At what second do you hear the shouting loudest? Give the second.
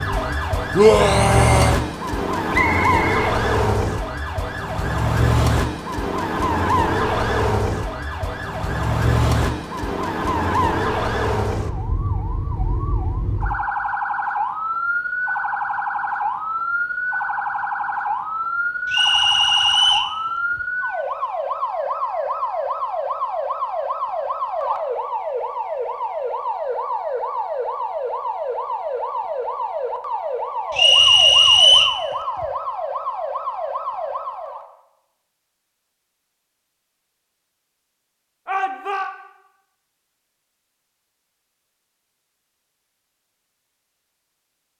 1 s.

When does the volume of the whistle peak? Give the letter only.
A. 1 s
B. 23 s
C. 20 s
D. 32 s
D.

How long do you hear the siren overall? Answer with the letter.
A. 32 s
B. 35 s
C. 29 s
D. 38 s
B.